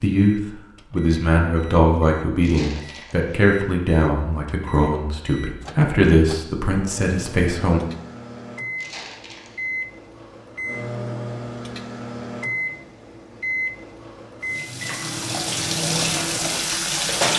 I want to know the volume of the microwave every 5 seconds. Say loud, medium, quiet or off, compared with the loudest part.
quiet, medium, loud, loud.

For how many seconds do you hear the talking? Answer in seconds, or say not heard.
8 s.